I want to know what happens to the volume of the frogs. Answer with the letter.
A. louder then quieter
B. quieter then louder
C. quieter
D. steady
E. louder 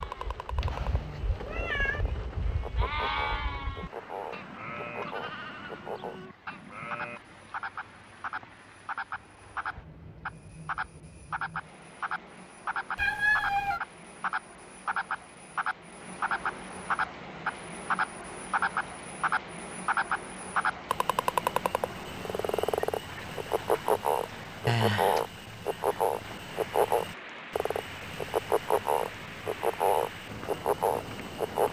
E.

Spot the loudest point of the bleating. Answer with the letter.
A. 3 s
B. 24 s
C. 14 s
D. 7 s
A.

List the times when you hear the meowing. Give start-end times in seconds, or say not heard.
0.6-2.0, 12.9-13.8, 24.6-25.2.